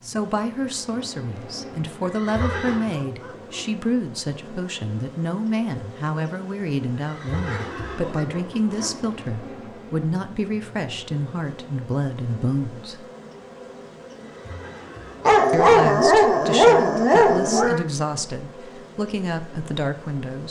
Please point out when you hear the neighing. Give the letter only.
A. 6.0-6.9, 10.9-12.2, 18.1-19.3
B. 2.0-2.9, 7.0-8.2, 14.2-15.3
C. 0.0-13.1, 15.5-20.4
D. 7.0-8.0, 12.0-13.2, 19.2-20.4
B.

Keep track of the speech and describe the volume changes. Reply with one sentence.
The volume of the speech stays about the same.